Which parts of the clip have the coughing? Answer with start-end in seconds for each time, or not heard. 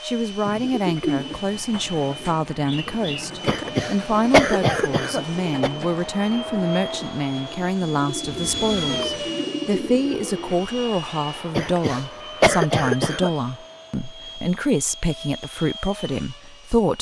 3.5-5.7, 11.6-13.3.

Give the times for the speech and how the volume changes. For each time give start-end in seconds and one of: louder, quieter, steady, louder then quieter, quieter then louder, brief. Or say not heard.
0.0-16.9 steady.